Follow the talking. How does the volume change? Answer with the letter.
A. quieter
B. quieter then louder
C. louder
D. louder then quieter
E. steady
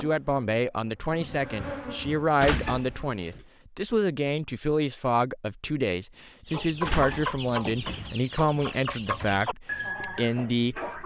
E.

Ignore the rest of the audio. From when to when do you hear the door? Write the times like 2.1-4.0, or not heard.
2.4-3.5, 6.8-8.0.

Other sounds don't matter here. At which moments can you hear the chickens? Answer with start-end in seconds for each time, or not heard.
6.5-11.0.